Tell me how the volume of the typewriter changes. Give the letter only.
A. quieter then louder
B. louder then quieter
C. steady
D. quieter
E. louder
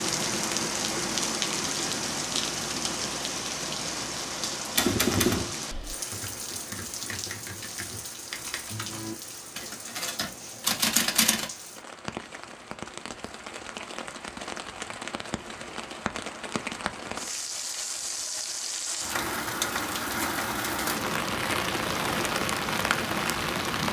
A.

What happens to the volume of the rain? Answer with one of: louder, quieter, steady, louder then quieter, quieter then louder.
quieter then louder.